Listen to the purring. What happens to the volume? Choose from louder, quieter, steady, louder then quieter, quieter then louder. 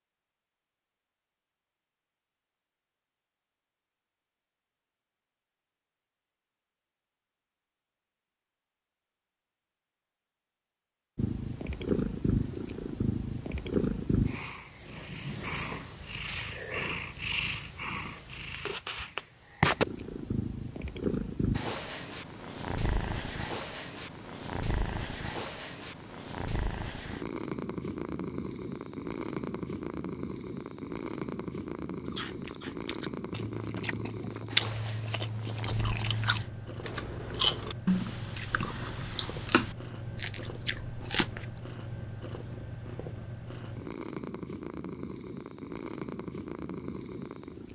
quieter.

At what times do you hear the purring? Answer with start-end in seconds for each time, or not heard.
11.2-47.7.